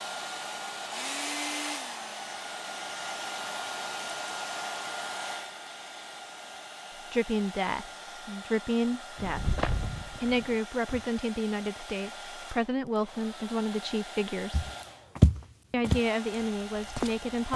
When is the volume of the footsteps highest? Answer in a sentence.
The loudest moment of the footsteps is at 15 seconds.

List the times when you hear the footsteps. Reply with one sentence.
You can hear the footsteps from 9.2 to 11.1 s and from 14.5 to 17.5 s.